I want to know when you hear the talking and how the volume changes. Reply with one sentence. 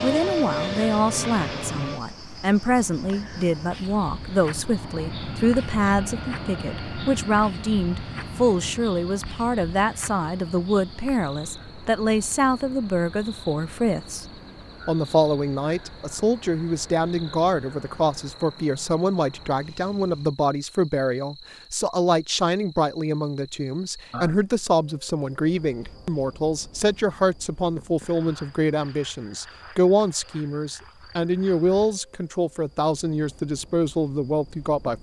The talking can be heard from 0.0 to 14.2 s, at a steady volume; and from 14.8 to 34.9 s, at a steady volume.